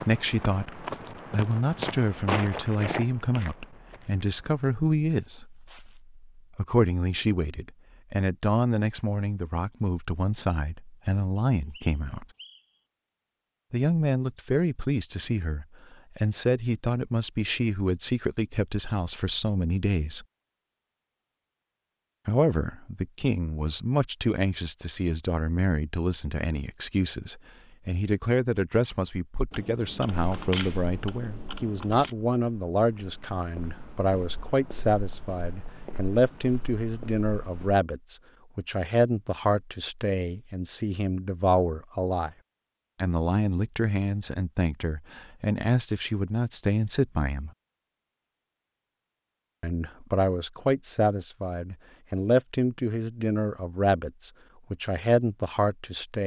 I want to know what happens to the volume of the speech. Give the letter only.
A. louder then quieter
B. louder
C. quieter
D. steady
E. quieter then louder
D.